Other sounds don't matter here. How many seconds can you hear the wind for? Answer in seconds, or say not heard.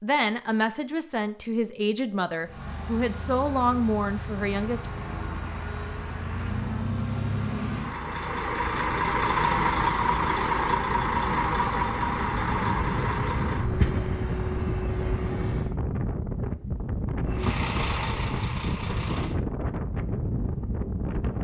13 s.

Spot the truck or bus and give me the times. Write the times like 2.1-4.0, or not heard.
2.4-15.8, 17.2-19.4.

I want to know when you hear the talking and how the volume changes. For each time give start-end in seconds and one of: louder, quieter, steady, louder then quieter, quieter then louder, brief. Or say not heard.
0.0-4.8 steady.